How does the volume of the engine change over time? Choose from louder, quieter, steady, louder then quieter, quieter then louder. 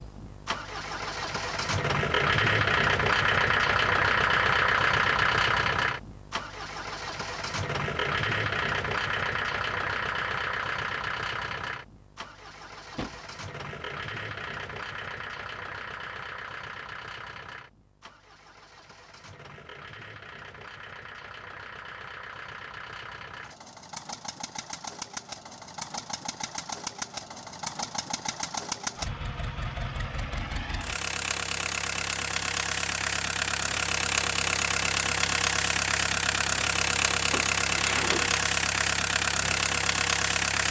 quieter then louder.